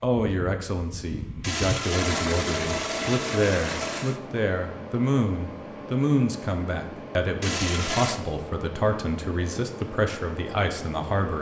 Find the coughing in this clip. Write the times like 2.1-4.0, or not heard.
not heard.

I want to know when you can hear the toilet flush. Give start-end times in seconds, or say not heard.
1.4-4.2, 7.4-8.2.